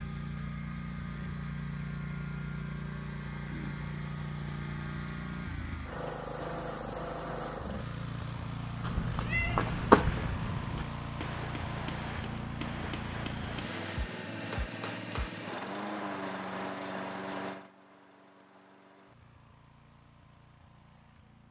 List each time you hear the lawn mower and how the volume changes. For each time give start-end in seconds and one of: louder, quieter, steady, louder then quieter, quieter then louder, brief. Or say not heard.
0.0-21.4 quieter.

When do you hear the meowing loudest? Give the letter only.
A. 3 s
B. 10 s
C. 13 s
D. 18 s
B.